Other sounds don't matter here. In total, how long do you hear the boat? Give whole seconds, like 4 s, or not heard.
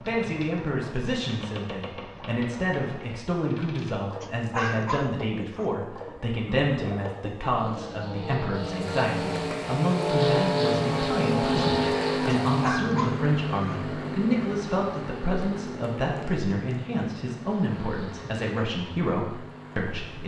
20 s.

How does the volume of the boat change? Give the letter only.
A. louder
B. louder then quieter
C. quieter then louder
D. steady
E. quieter
B.